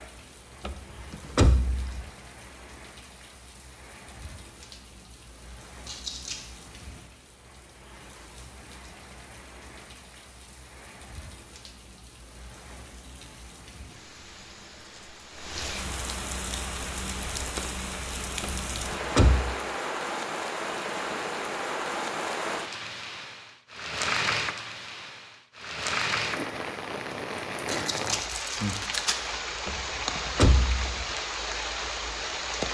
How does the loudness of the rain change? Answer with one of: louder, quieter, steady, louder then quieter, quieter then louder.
louder.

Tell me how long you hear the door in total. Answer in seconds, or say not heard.
4 s.